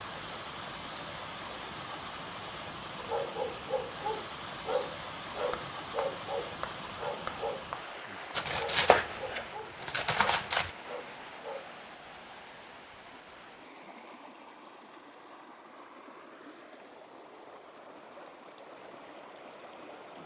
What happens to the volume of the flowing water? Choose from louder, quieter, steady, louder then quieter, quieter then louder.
quieter.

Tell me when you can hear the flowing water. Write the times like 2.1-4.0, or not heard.
0.0-20.2.